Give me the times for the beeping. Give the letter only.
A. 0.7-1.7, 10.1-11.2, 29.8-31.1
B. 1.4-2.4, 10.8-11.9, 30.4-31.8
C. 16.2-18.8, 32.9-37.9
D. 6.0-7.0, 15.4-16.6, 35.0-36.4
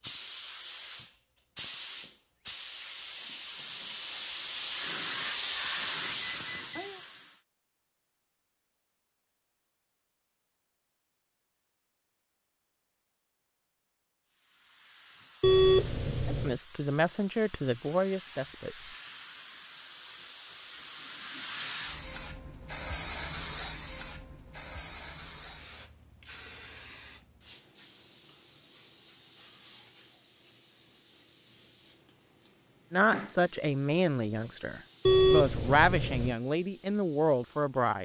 D.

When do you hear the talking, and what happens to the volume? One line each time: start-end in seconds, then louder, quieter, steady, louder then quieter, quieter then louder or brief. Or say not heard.
16.2-18.8 brief
32.9-37.9 quieter then louder.